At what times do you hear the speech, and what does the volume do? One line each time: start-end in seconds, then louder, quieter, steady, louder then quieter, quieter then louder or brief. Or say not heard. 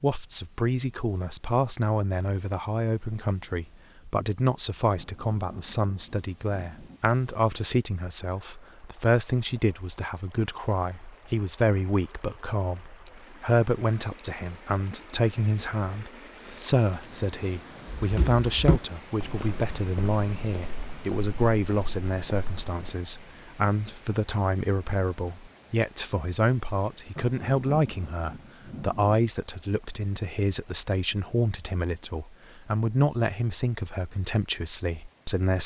0.0-35.6 steady.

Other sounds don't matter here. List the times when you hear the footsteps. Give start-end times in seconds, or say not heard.
17.9-22.9.